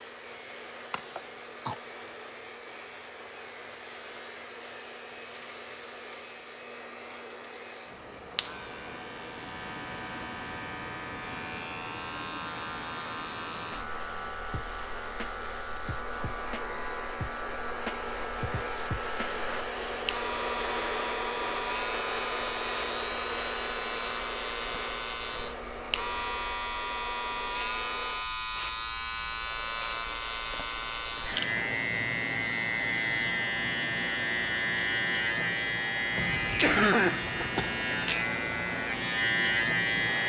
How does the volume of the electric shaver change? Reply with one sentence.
The loudness of the electric shaver goes up.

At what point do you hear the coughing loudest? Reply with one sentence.
The loudest moment of the coughing is at 37 seconds.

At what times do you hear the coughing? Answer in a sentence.
You can hear the coughing from 0.9 to 1.8 s and from 36.1 to 37.7 s.